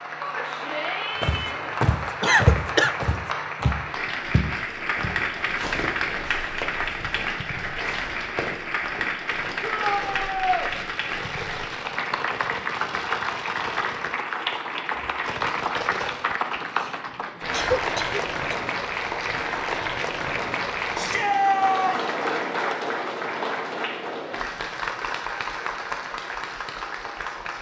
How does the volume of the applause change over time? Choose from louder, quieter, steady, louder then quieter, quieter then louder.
steady.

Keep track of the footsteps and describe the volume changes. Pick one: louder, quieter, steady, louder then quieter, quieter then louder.
quieter.